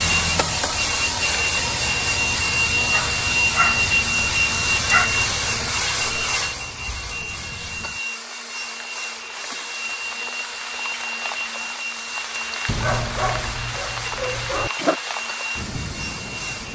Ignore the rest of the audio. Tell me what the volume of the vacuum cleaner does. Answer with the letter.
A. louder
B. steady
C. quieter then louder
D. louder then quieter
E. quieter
E.